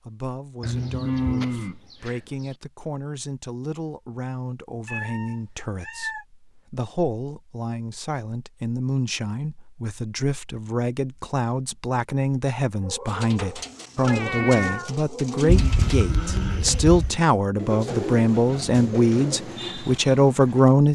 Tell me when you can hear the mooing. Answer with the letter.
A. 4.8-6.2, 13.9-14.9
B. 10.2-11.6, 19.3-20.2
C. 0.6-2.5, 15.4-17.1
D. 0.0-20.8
C.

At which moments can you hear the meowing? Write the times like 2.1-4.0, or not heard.
4.8-6.2, 13.9-14.9.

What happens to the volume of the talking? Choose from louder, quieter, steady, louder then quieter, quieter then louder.
louder.